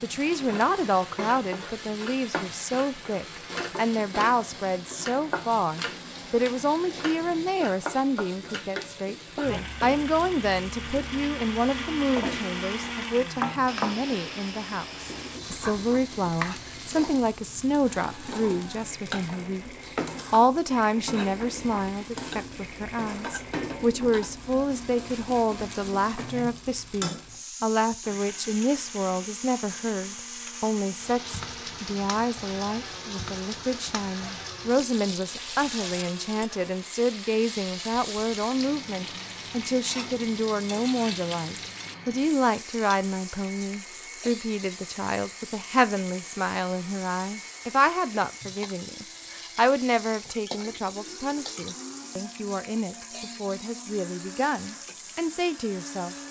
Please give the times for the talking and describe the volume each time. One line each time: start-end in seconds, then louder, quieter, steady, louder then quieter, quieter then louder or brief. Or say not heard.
0.0-56.1 steady.